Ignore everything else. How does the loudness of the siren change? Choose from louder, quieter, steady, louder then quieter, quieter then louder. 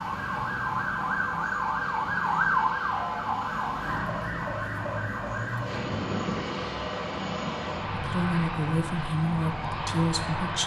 quieter.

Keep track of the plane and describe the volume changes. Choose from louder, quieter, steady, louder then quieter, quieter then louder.
louder.